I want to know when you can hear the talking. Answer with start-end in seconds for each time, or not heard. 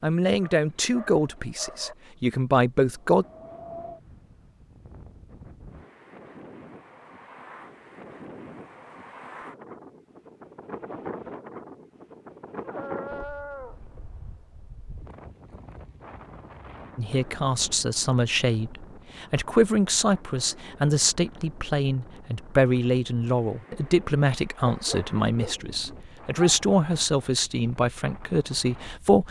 0.0-3.2, 16.9-29.2.